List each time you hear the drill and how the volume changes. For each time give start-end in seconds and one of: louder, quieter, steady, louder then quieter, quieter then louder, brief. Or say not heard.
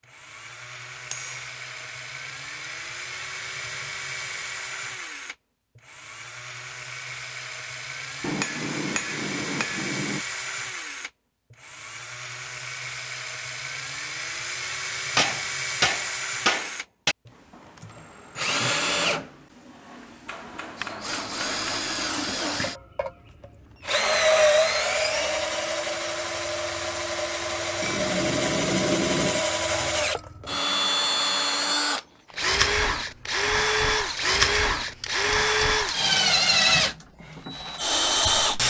0.1-38.6 louder.